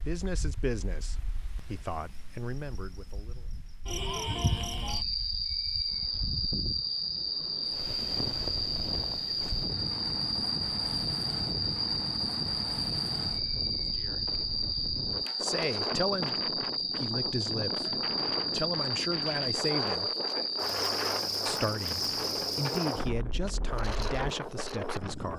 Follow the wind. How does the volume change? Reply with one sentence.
The loudness of the wind goes up.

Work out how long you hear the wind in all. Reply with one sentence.
You can hear the wind for 25 seconds altogether.